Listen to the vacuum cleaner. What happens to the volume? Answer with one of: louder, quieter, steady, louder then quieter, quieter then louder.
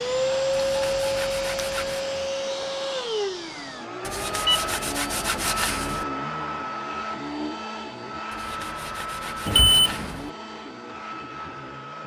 quieter.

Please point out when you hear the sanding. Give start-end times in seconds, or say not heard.
0.6-2.0, 4.0-6.0, 8.3-10.3.